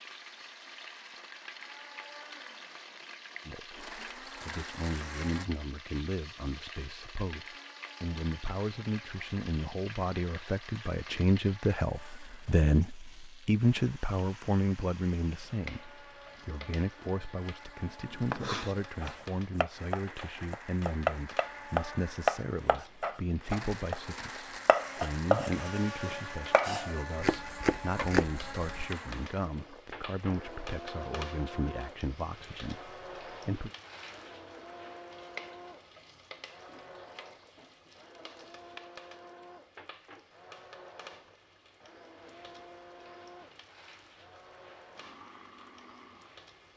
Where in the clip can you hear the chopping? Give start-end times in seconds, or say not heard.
18.1-28.9.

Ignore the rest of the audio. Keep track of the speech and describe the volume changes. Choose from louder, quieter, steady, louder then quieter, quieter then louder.
louder then quieter.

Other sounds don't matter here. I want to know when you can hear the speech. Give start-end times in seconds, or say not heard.
3.5-33.7.